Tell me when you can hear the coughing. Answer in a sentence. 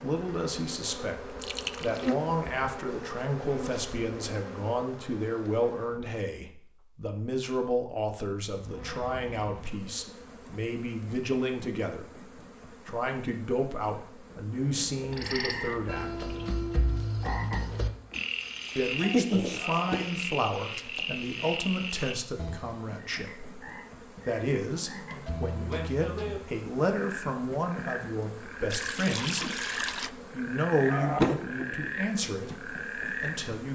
The coughing can't be heard in this clip.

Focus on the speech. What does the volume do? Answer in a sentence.
The volume of the speech stays about the same.